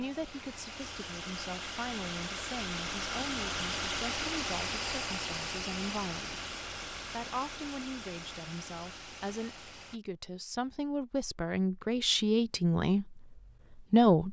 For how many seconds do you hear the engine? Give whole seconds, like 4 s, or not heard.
10 s.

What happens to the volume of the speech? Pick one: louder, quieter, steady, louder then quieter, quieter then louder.
louder.